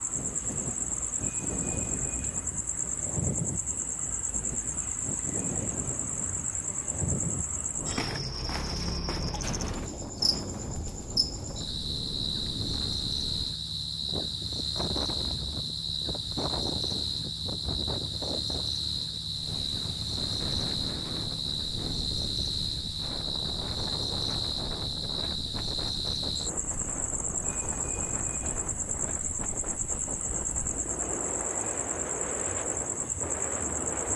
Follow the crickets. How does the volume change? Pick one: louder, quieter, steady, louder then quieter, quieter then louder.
steady.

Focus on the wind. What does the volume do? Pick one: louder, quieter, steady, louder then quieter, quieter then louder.
steady.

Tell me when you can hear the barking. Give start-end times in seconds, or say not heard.
not heard.